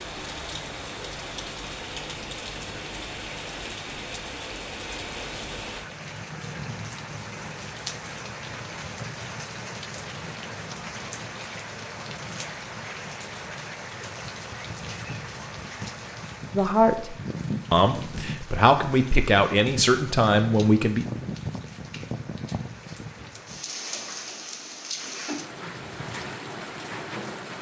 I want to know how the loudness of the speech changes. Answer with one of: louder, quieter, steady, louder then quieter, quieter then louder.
louder.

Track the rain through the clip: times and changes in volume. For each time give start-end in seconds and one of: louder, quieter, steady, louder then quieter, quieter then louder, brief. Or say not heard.
0.0-27.5 steady.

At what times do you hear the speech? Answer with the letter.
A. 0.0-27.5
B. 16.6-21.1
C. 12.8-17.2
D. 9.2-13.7
B.